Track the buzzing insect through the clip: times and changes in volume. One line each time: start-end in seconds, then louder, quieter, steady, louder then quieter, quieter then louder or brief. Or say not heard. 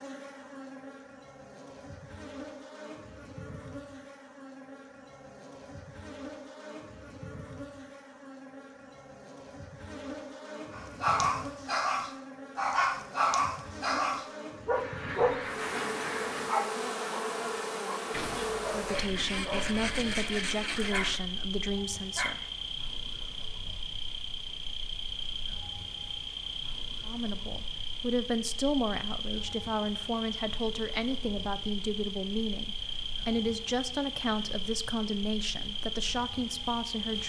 0.0-37.2 louder.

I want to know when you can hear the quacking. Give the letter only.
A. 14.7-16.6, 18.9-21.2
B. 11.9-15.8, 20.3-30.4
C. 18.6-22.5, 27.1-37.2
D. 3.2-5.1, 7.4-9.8
A.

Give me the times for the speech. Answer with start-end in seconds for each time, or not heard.
18.6-22.5, 27.1-37.2.